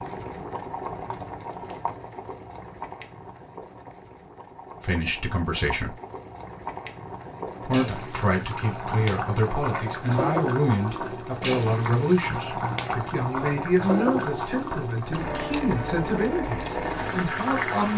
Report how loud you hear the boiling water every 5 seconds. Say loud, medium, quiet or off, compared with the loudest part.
medium, medium, loud, loud.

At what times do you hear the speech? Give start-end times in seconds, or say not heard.
4.8-6.0, 7.7-17.9.